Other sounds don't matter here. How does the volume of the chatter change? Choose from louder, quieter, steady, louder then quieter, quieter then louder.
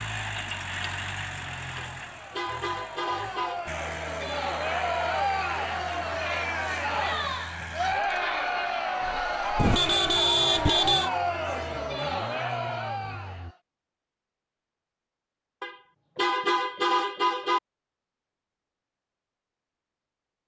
louder.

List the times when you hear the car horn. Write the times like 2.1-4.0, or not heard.
1.8-3.6, 9.6-11.1, 15.6-17.6.